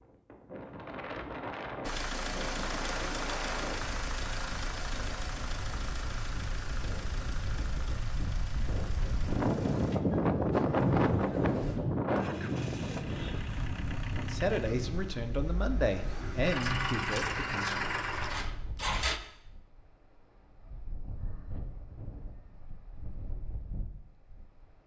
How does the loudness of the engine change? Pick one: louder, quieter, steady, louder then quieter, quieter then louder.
quieter then louder.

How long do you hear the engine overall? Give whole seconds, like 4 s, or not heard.
17 s.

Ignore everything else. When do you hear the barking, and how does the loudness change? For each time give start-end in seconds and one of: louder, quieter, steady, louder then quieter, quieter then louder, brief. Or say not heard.
not heard.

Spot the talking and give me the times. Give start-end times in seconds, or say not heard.
14.2-17.9.